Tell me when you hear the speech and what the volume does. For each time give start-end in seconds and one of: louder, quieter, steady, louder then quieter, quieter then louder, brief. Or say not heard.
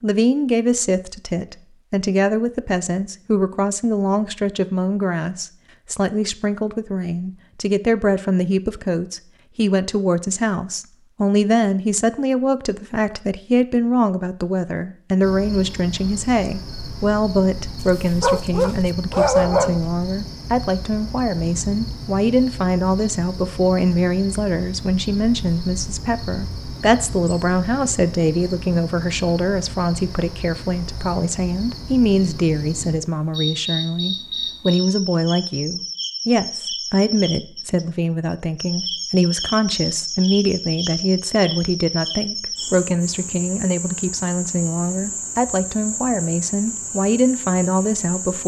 0.0-48.4 steady.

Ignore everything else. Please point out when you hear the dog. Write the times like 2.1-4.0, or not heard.
18.2-19.8.